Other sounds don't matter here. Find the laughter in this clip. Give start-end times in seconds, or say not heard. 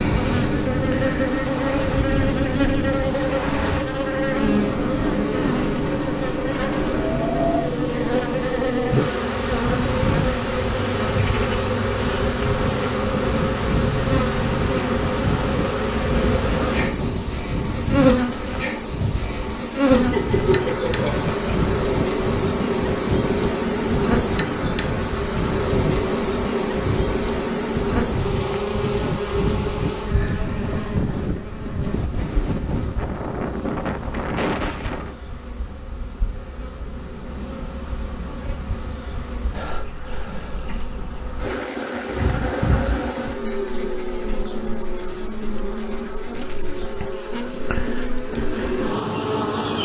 19.9-21.4.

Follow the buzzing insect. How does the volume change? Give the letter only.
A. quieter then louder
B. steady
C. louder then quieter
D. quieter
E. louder
A.